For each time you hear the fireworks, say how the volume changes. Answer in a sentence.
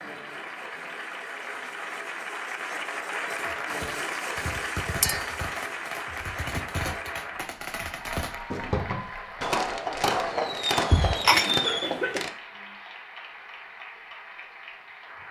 You can hear the fireworks from 3.3 to 12.3 s, getting louder.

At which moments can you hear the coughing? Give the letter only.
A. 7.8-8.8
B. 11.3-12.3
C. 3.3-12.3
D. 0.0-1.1
B.